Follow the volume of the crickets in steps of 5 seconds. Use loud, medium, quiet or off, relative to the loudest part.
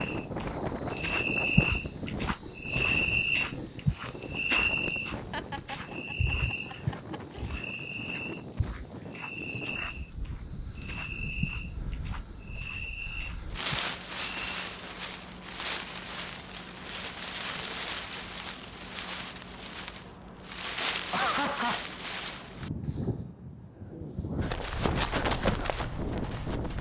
loud, medium, medium, off, off, off.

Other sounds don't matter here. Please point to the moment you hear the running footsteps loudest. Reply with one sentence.
The volume of the running footsteps peaks at 25 seconds.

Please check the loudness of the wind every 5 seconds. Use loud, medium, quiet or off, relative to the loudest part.
loud, medium, loud, loud, loud, loud.